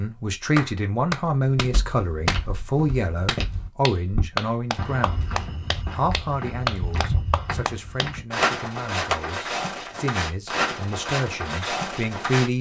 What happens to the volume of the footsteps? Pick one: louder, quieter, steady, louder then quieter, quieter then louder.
louder.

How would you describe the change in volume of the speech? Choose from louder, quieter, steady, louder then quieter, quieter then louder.
quieter then louder.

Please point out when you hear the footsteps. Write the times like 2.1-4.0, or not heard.
1.6-12.5.